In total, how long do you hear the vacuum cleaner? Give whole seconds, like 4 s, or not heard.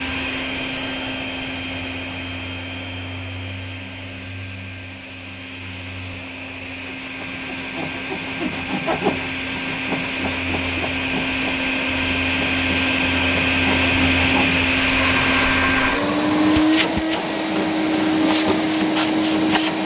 20 s.